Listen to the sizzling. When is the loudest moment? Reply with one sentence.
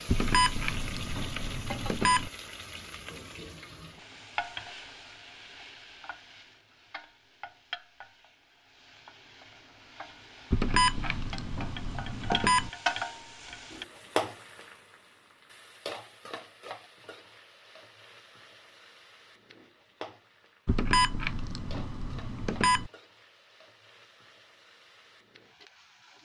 The loudest moment of the sizzling is at 13 seconds.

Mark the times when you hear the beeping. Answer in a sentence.
You can hear the beeping from 0.1 to 2.3 s, from 10.5 to 12.7 s and from 20.6 to 22.9 s.